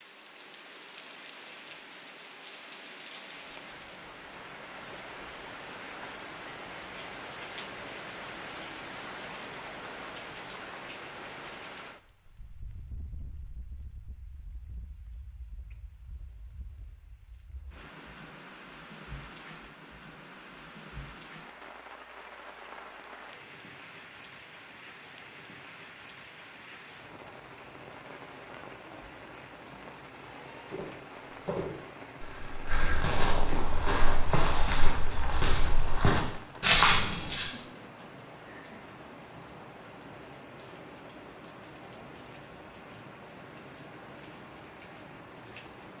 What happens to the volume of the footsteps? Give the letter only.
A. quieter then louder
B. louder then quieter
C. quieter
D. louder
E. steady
D.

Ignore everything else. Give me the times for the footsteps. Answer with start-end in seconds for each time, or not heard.
30.7-37.5.